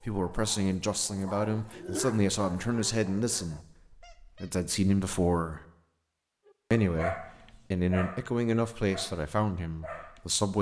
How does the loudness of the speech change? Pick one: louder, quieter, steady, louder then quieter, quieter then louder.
steady.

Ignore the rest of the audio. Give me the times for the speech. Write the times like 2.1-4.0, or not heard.
0.0-5.6, 6.7-10.5.